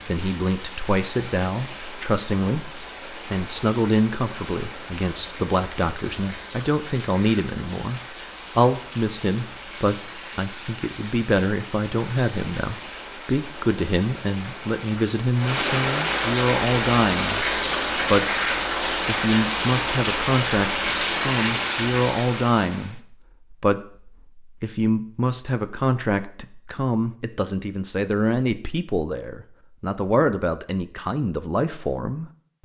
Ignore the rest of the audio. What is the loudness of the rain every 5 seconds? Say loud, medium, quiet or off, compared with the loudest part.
quiet, quiet, quiet, loud, loud, off, off.